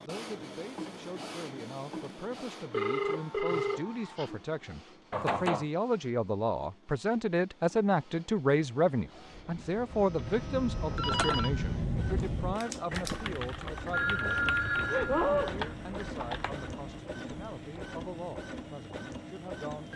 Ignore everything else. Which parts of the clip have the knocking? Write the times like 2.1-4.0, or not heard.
5.1-5.7, 10.8-11.6.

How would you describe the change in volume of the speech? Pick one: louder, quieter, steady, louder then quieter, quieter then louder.
louder then quieter.